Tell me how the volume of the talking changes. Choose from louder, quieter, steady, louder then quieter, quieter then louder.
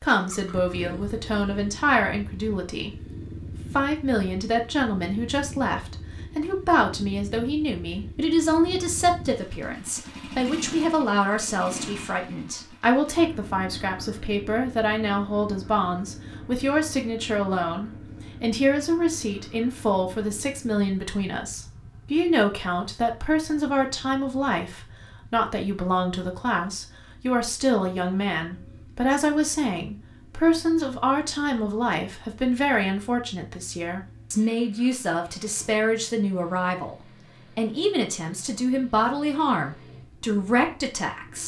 steady.